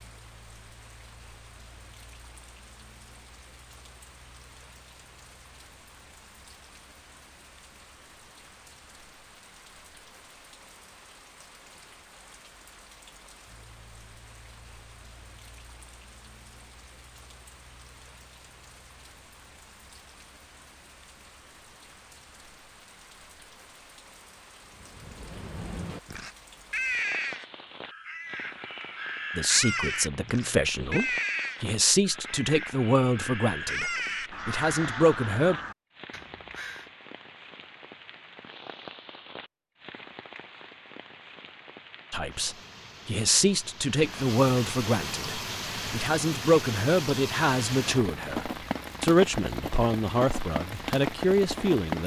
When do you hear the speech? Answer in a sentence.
The speech can be heard from 29.4 to 35.6 s and from 42.1 to 52.0 s.